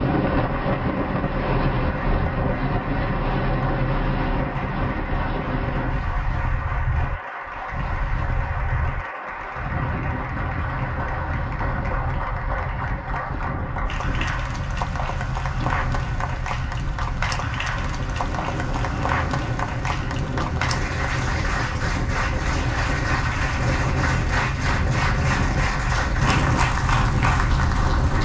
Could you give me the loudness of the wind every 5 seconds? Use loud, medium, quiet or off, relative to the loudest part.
loud, medium, medium, medium, loud, loud.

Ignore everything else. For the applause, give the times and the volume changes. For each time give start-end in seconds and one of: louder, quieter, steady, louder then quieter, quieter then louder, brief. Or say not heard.
0.0-28.1 louder.